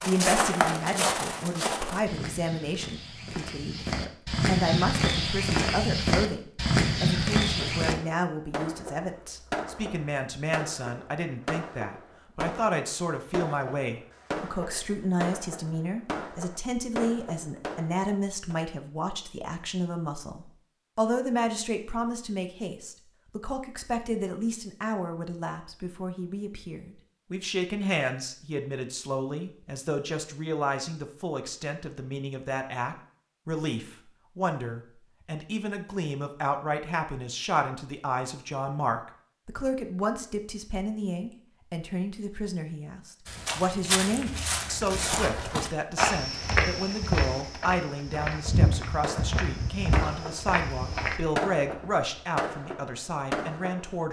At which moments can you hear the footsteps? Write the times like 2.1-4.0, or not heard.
0.0-8.0, 43.2-51.2.